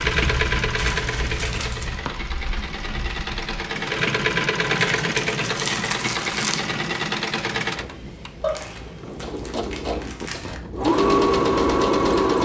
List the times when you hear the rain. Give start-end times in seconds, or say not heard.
0.0-9.4.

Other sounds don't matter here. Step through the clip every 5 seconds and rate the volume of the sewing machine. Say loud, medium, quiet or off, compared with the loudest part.
medium, medium, loud.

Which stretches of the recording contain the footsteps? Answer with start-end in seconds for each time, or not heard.
not heard.